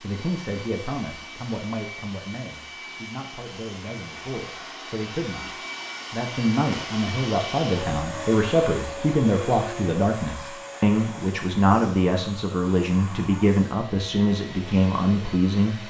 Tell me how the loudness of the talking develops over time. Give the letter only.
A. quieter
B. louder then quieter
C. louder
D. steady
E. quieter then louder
C.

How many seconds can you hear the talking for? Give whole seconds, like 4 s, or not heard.
15 s.